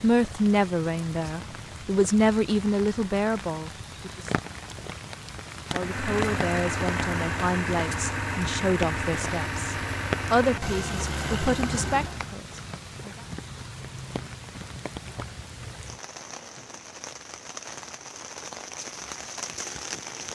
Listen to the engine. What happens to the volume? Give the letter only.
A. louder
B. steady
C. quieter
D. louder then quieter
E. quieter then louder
B.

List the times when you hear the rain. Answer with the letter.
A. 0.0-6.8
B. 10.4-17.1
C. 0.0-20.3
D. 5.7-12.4
C.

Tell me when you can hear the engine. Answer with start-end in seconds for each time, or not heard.
5.7-12.4.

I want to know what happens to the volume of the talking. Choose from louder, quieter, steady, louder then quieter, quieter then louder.
quieter.